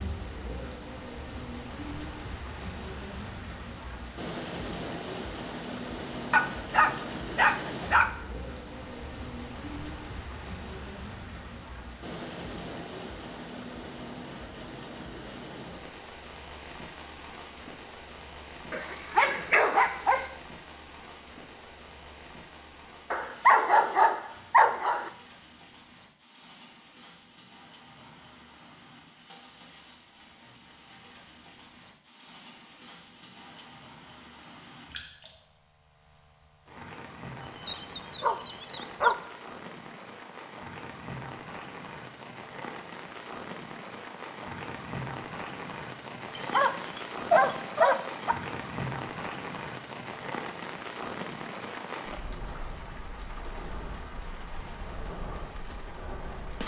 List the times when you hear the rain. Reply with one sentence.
The rain can be heard from 0.0 to 56.6 s.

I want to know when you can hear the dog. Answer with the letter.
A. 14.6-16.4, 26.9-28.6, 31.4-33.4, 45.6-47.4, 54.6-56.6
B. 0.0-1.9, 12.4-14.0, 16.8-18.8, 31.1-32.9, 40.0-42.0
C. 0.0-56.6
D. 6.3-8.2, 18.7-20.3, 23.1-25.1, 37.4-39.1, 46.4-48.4
D.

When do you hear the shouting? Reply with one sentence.
The shouting can't be heard in this clip.